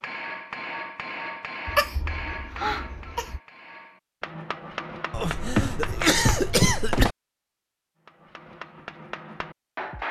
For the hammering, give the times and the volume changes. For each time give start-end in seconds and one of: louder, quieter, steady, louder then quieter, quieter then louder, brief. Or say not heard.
0.0-6.7 quieter then louder
8.1-10.0 brief.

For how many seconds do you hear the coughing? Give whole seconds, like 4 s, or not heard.
4 s.